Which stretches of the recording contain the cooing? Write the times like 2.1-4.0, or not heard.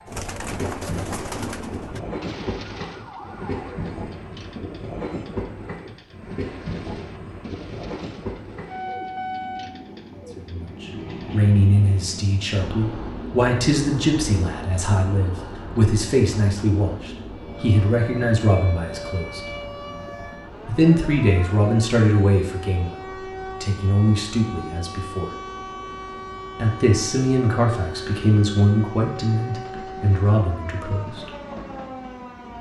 0.1-11.3.